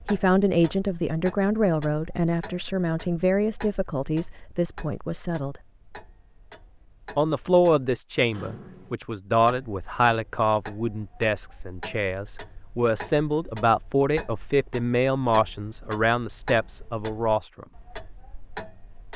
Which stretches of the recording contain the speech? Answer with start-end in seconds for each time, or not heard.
0.1-5.6, 7.2-17.6.